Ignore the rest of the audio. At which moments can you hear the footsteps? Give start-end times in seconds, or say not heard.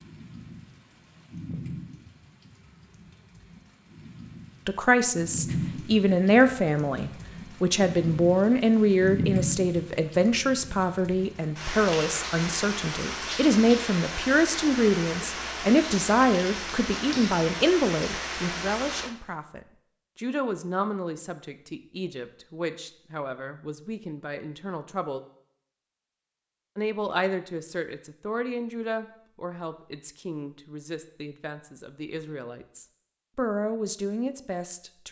not heard.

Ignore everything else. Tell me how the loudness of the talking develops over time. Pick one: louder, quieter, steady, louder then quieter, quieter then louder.
quieter.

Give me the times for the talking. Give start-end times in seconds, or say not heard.
4.7-25.2, 26.8-35.0.